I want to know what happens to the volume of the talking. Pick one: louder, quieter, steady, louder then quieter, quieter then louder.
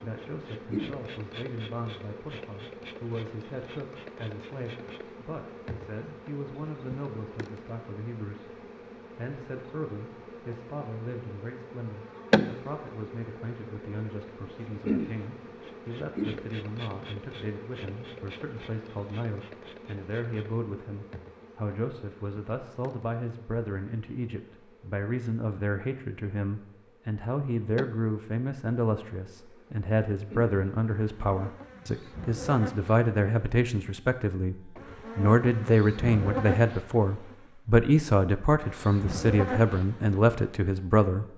louder.